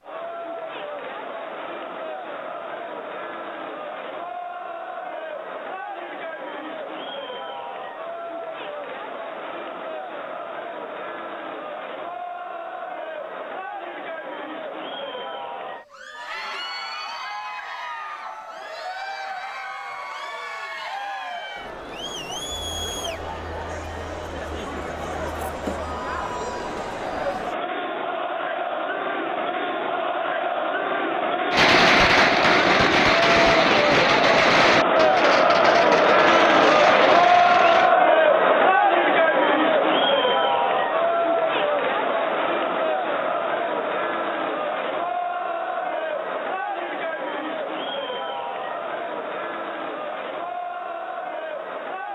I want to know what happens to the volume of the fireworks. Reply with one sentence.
The loudness of the fireworks goes down.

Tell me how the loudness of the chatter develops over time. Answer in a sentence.
The volume of the chatter goes up, then down.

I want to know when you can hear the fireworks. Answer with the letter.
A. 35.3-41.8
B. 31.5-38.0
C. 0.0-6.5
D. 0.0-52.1
B.